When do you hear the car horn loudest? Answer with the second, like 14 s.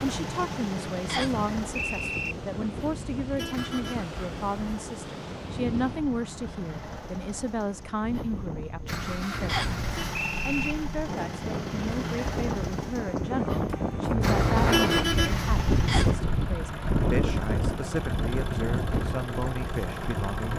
15 s.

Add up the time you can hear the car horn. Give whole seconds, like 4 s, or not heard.
5 s.